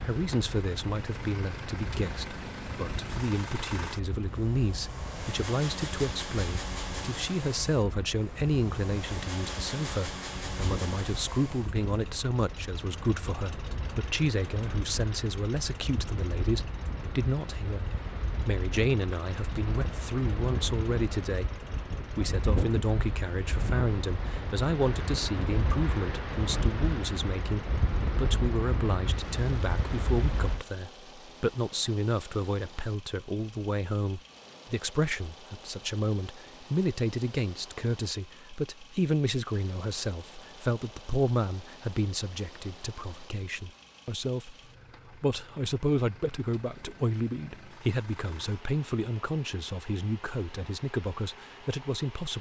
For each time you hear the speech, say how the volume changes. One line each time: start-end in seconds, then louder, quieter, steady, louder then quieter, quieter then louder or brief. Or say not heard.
0.0-52.3 steady.